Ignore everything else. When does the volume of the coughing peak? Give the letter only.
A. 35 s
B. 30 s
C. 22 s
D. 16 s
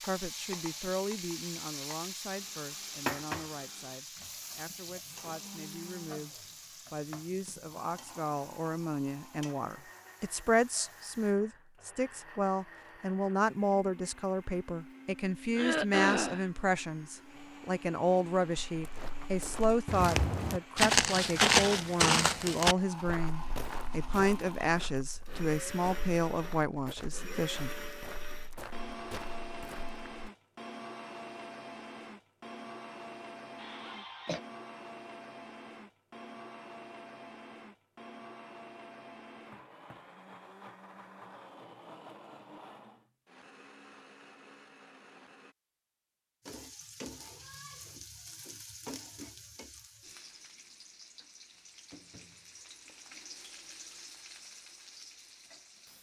D.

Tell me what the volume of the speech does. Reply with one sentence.
The loudness of the speech goes up.